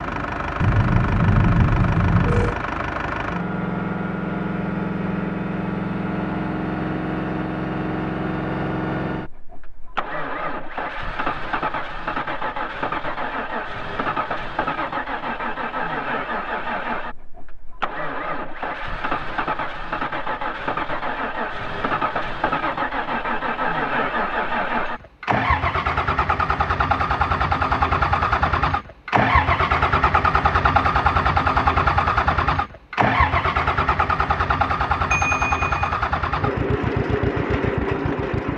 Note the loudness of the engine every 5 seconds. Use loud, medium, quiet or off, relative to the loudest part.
medium, medium, medium, medium, medium, loud, loud, loud.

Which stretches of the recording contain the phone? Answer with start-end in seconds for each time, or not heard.
0.6-2.5, 35.1-35.9.